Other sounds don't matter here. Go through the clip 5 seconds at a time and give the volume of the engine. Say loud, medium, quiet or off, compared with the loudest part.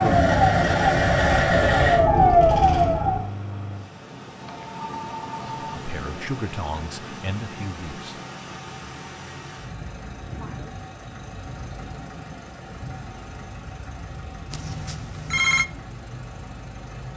loud, quiet, quiet, quiet.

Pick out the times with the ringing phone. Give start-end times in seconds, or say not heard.
4.4-5.8, 14.5-15.7.